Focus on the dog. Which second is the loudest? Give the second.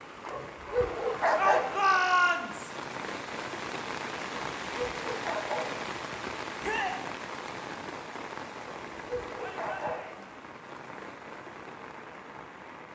1 s.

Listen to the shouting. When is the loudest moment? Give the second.
2 s.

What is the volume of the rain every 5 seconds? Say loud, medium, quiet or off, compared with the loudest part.
loud, loud, medium.